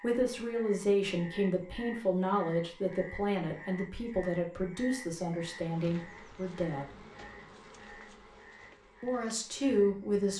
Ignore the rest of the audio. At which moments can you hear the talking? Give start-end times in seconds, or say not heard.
0.0-7.0, 9.0-10.3.